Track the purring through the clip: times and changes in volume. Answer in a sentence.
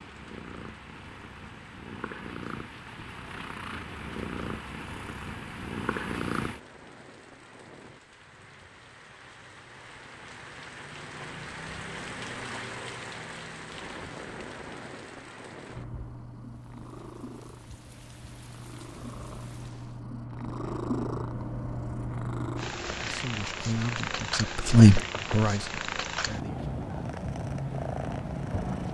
You can hear the purring from 0.0 to 6.6 s, getting louder; and from 15.7 to 28.8 s, getting louder.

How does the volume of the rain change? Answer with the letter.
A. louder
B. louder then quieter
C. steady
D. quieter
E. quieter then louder
B.